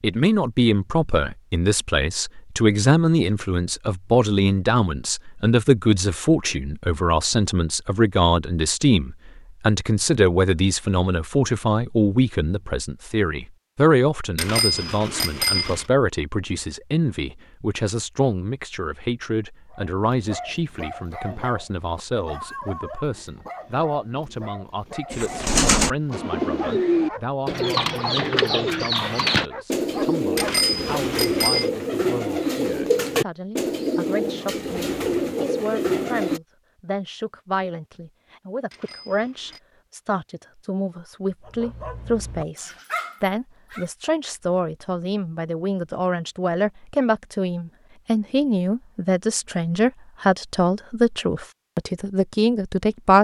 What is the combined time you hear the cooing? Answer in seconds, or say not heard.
11 s.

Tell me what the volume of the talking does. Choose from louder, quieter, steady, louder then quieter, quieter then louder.
quieter then louder.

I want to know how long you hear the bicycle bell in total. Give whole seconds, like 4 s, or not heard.
4 s.